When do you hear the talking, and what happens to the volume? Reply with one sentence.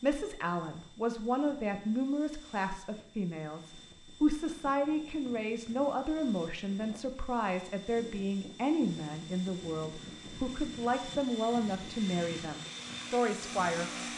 You can hear the talking from 0.0 to 13.9 s, at a steady volume.